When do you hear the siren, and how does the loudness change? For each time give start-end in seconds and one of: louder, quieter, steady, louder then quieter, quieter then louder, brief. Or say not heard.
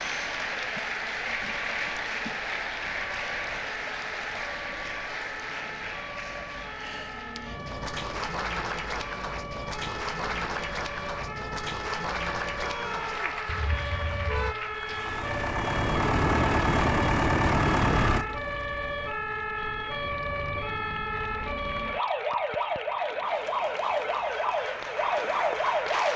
0.0-26.1 louder.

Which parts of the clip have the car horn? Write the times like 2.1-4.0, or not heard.
13.4-14.6.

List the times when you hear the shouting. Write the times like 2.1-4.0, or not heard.
12.6-13.3.